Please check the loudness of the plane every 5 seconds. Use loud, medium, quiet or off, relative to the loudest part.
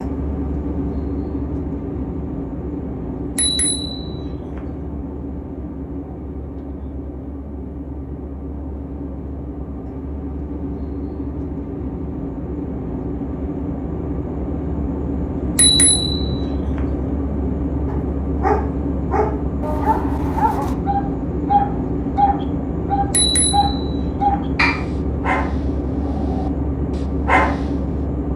loud, medium, loud, loud, loud, loud.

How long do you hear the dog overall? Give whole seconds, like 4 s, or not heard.
9 s.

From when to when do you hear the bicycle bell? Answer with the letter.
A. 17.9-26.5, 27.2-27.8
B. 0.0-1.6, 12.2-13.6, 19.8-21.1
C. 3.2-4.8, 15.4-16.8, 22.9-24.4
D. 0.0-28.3
C.